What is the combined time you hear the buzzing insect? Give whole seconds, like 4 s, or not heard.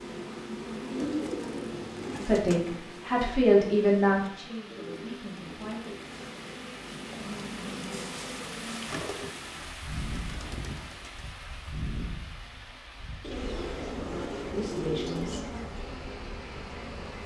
17 s.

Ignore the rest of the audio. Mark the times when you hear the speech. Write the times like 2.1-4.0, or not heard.
2.2-5.9, 14.5-15.4.